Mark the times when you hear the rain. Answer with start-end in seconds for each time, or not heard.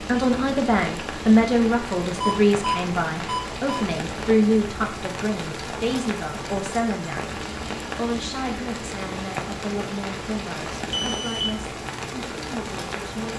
0.0-13.3.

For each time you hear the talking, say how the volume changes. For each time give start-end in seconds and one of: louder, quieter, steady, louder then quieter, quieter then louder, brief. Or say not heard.
0.1-13.3 quieter.